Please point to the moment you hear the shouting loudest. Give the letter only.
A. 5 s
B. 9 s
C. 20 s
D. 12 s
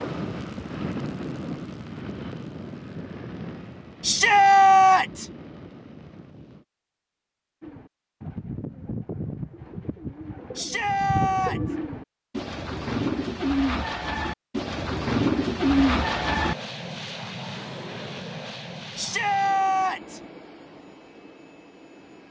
A.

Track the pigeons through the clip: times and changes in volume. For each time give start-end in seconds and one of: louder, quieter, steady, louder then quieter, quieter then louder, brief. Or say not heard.
7.6-16.6 louder.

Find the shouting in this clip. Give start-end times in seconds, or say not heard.
4.0-5.2, 10.6-11.6, 18.9-20.2.